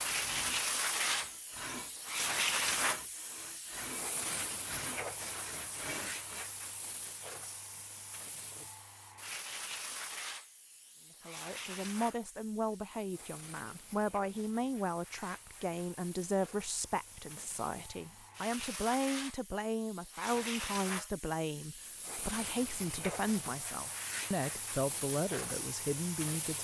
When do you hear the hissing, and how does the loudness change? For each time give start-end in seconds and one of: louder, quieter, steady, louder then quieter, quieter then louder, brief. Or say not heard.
0.0-26.5 quieter then louder.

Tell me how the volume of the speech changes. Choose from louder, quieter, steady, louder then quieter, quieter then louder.
steady.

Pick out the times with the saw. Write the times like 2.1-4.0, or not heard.
0.0-6.5.